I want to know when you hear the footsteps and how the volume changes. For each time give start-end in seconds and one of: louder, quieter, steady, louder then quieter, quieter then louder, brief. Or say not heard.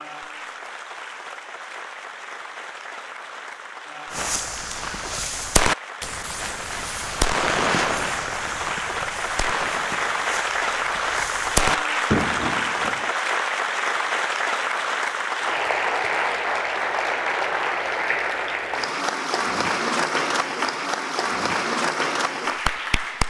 not heard.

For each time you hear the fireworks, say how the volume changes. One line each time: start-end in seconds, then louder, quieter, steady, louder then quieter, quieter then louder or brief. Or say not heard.
4.1-13.1 quieter then louder.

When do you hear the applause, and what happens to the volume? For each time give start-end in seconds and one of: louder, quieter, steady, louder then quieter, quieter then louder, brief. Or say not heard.
0.0-23.2 louder.